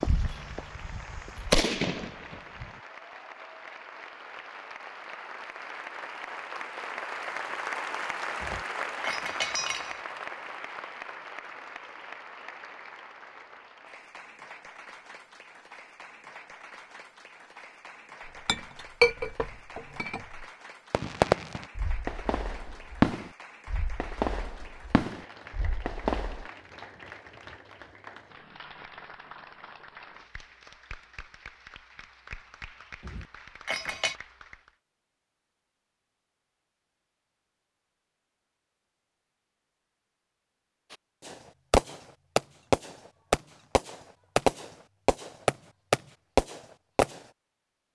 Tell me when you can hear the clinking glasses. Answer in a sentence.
You can hear the clinking glasses from 8.4 to 10.0 s, from 18.2 to 20.4 s and from 33.0 to 34.1 s.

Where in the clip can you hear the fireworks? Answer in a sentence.
You can hear the fireworks from 0.0 to 2.7 s, from 20.9 to 26.4 s and from 40.9 to 47.2 s.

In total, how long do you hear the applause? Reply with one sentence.
You can hear the applause for 35 seconds altogether.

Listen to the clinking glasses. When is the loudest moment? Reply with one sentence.
The volume of the clinking glasses peaks at 19 seconds.